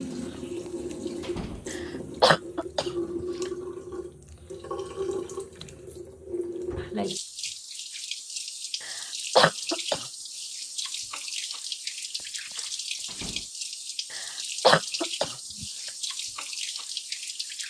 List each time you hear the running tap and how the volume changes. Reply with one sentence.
You can hear the running tap from 0.0 to 17.6 s, at a steady volume.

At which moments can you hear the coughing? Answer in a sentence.
You can hear the coughing from 1.7 to 3.2 s, from 8.8 to 10.1 s and from 14.1 to 15.7 s.